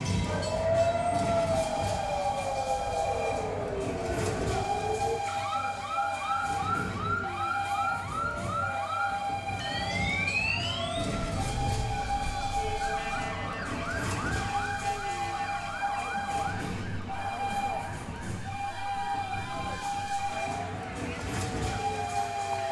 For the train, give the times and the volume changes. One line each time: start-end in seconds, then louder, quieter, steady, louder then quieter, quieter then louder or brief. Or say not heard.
0.0-22.6 steady.